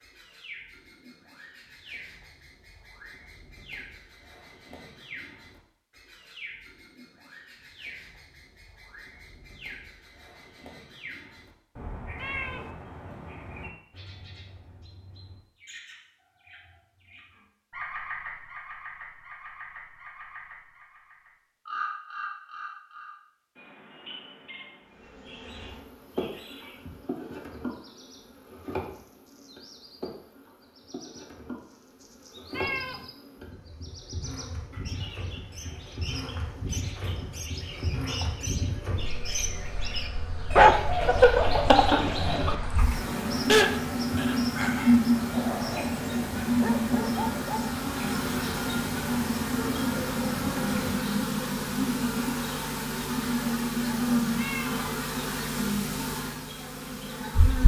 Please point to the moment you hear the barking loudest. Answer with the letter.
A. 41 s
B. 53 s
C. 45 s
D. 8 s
A.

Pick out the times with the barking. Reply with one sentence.
You can hear the barking from 40.5 to 47.7 s.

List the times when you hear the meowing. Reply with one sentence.
The meowing can be heard from 12.2 to 12.7 s, from 32.5 to 33.0 s and from 54.4 to 54.9 s.